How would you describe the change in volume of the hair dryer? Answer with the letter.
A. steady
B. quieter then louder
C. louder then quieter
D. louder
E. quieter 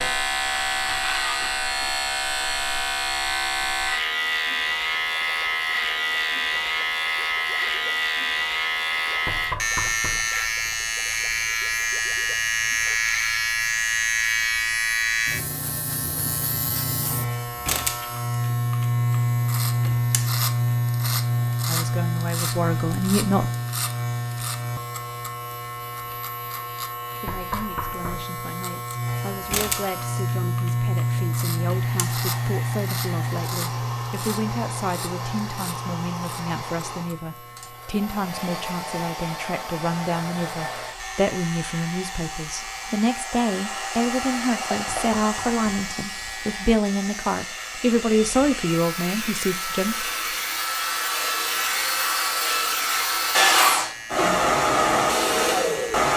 D.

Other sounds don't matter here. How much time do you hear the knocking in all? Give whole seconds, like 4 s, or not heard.
3 s.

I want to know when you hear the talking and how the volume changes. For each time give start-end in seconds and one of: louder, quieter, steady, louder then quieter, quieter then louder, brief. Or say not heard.
21.6-23.4 brief
27.2-50.0 louder.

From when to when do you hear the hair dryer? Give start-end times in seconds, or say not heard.
31.7-56.1.